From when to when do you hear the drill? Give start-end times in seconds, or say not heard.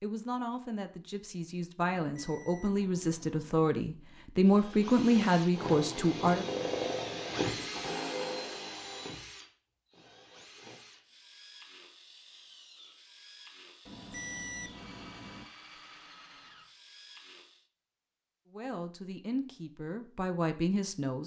4.4-17.7.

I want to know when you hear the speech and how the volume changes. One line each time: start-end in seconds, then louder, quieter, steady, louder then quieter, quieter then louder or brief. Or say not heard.
0.0-6.5 louder
18.5-21.2 brief.